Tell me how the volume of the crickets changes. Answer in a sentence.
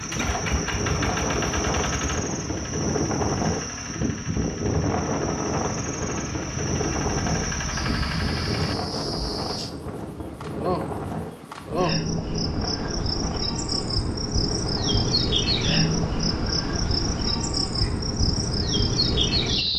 The loudness of the crickets goes up.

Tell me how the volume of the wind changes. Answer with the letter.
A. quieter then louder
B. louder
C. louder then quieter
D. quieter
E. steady
D.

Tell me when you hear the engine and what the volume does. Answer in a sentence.
You can hear the engine from 0.0 to 8.8 s, getting quieter then louder.